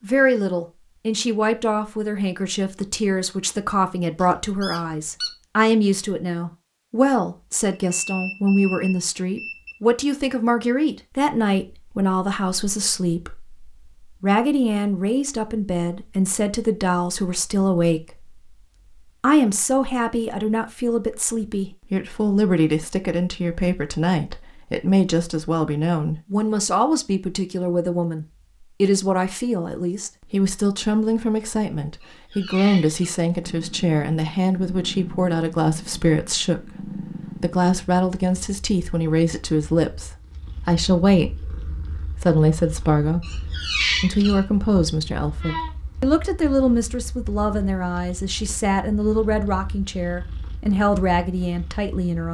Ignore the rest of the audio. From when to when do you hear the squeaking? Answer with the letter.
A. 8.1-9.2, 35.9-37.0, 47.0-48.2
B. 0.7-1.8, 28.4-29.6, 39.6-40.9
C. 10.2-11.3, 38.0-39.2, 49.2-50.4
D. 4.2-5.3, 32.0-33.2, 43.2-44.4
D.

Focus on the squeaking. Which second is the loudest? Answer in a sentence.
The volume of the squeaking peaks at 44 seconds.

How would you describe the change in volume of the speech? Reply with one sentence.
The loudness of the speech stays about the same.